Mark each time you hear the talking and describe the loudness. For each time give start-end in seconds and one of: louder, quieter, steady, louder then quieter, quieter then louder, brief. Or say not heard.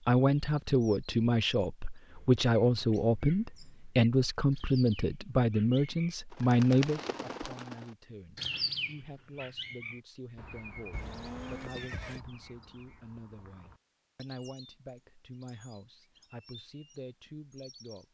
0.1-18.0 quieter.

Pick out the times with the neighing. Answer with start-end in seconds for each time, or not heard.
10.9-12.2.